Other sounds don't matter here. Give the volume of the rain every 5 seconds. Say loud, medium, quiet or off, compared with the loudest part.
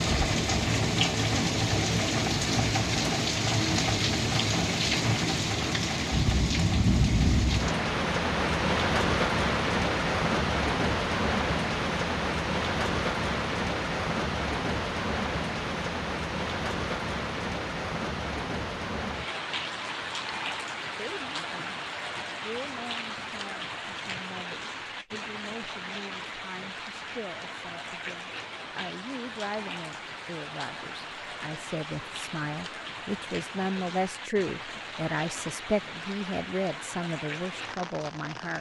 loud, loud, loud, medium, medium, quiet, quiet, quiet.